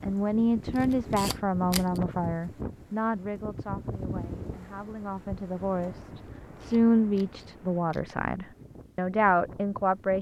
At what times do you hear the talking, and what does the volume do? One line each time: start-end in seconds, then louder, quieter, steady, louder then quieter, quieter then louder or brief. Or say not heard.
0.0-10.1 quieter then louder.